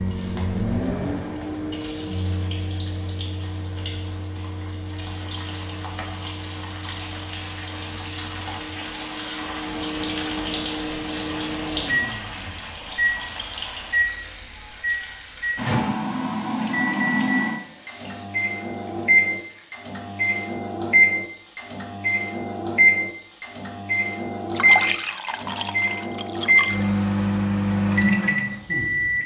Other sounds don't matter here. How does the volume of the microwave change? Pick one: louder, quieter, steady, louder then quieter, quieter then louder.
louder.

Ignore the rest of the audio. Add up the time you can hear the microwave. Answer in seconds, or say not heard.
29 s.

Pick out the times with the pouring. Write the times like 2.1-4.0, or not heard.
24.5-27.0.